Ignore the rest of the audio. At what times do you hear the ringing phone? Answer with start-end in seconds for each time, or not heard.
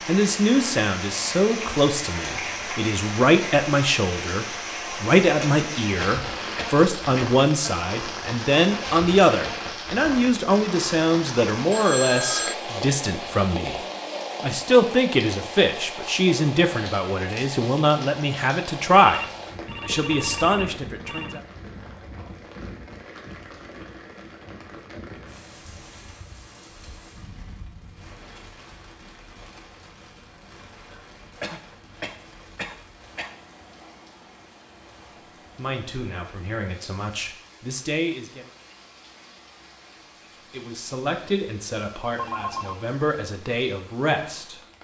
11.7-12.6, 19.1-21.4, 42.1-42.9.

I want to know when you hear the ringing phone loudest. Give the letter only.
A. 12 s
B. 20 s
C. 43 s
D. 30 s
A.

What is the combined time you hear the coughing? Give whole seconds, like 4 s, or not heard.
4 s.